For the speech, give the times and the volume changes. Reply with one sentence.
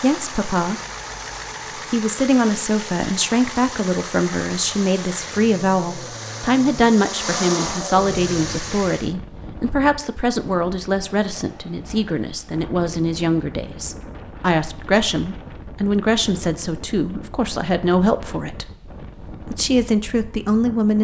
The speech can be heard briefly from 0.0 to 0.8 s; from 1.9 to 18.6 s, at a steady volume; and briefly from 19.4 to 21.0 s.